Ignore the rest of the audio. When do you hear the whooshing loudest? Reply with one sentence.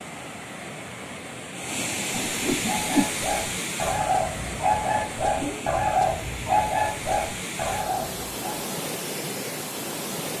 The loudest moment of the whooshing is at 3 seconds.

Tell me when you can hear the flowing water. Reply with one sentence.
You can hear the flowing water from 0.0 to 10.3 s.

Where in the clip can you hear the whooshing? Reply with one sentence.
The whooshing can be heard from 2.1 to 3.0 s and from 5.3 to 5.8 s.